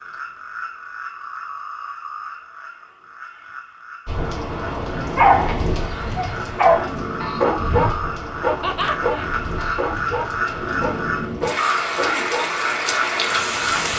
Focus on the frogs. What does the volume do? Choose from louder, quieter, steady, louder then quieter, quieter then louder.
quieter then louder.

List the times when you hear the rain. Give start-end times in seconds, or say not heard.
4.0-13.9.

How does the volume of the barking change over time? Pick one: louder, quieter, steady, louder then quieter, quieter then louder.
quieter.